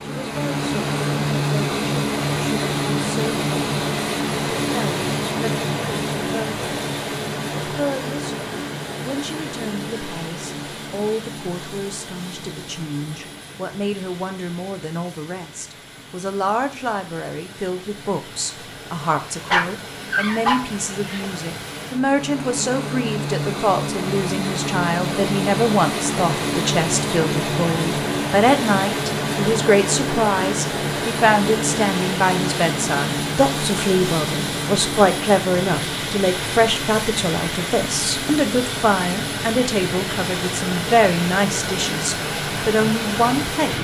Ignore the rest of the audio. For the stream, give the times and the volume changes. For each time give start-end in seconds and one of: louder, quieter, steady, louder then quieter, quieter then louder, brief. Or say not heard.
not heard.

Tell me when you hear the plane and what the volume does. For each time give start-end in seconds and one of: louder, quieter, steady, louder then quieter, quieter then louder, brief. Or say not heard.
0.0-43.8 quieter then louder.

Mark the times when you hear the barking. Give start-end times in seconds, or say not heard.
19.4-21.3.